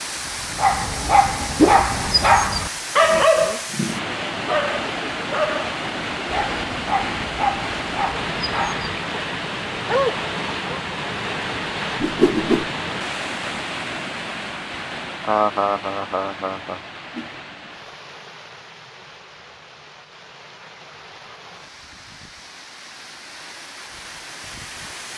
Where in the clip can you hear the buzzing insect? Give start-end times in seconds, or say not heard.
not heard.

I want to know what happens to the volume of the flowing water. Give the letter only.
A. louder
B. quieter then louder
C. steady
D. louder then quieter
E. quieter
E.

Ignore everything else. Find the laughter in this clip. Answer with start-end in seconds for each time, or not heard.
15.2-16.8.